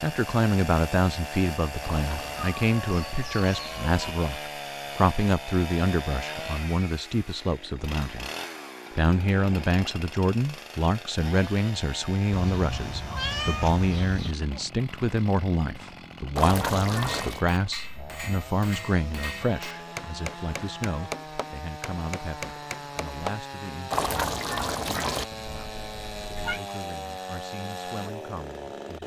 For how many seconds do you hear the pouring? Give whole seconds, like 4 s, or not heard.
3 s.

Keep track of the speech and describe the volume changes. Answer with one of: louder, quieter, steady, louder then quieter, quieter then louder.
quieter.